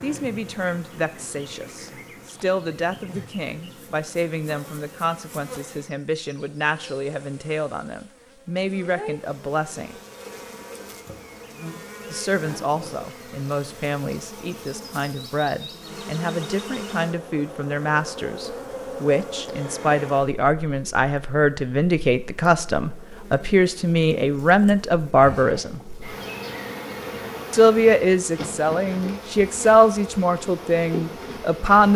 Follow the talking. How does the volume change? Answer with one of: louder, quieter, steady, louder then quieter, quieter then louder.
louder.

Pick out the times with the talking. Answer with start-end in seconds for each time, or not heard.
0.0-9.9, 12.1-25.8, 27.5-31.9.